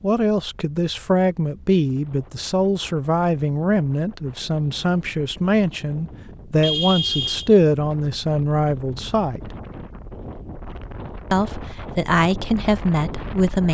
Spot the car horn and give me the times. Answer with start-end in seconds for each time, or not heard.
6.6-7.5.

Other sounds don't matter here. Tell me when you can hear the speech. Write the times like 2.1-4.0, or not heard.
0.0-9.4, 11.3-13.7.